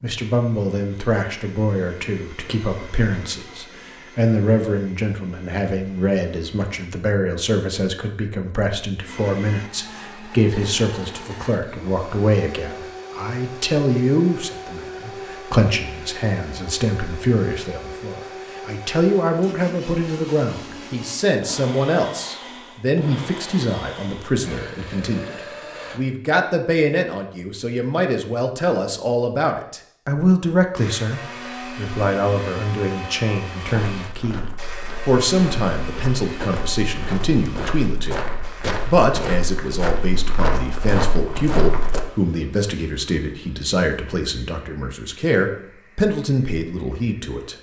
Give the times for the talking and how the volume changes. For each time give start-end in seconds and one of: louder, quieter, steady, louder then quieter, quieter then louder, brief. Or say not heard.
0.0-47.5 steady.